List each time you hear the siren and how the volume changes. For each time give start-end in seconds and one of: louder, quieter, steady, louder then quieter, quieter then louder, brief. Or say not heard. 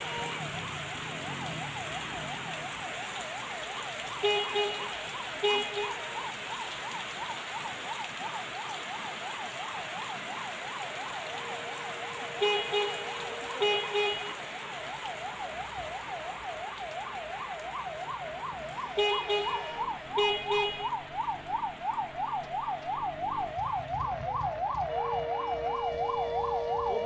0.0-27.0 louder.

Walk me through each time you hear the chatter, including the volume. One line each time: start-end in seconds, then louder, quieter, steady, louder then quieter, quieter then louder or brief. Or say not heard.
not heard.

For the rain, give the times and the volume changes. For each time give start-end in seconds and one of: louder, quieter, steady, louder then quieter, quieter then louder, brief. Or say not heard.
0.0-27.0 quieter.